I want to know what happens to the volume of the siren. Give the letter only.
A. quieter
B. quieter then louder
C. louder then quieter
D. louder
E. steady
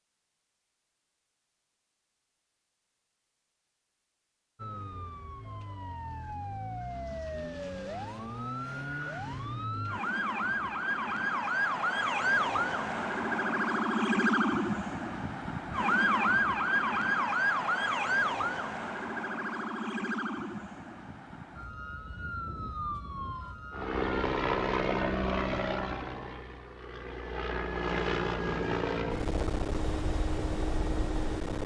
C.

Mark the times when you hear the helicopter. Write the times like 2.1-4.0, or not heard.
23.7-31.6.